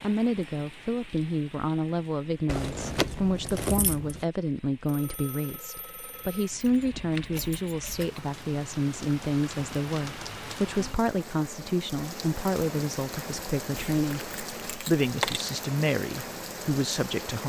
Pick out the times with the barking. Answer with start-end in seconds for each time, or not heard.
not heard.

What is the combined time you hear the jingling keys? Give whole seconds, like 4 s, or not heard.
5 s.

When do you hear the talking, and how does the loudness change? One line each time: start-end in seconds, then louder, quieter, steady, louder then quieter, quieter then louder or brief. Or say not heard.
0.0-14.2 steady
14.8-17.4 brief.